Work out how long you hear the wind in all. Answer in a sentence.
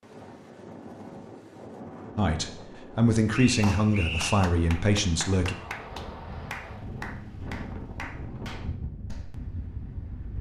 The wind can be heard for 10 seconds in total.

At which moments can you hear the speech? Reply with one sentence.
The speech can be heard from 2.1 to 5.5 s.